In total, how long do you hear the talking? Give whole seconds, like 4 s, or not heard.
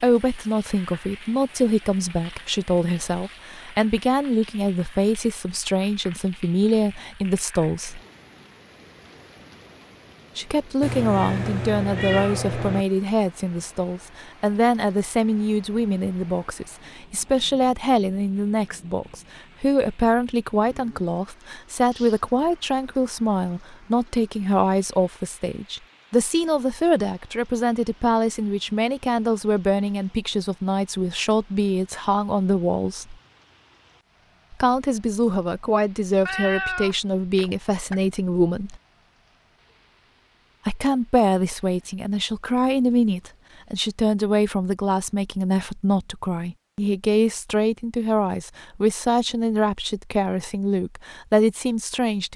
47 s.